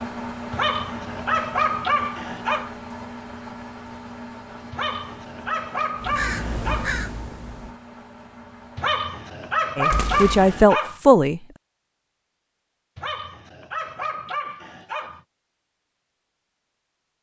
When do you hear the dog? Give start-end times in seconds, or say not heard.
0.5-2.7, 4.7-7.0, 8.8-10.9, 12.9-15.2.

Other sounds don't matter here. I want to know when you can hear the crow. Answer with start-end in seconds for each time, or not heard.
6.0-7.8.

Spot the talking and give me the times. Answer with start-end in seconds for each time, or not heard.
9.8-11.4.